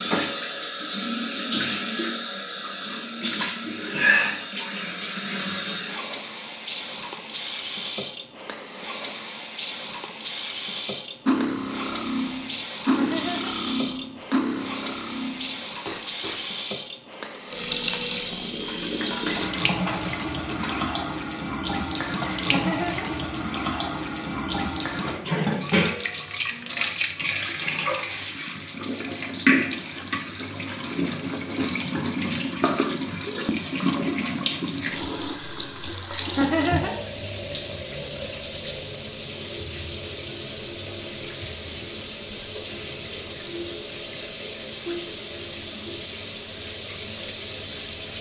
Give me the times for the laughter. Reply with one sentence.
The laughter can be heard from 12.8 to 13.8 s, from 22.3 to 23.1 s and from 36.1 to 37.0 s.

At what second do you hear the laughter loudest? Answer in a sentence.
The loudest moment of the laughter is at 37 seconds.